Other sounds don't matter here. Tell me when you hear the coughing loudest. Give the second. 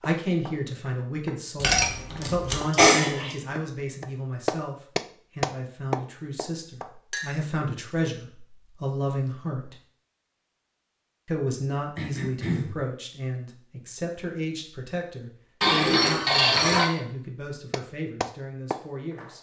3 s.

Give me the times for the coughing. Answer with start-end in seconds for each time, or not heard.
2.7-3.4, 11.9-12.8.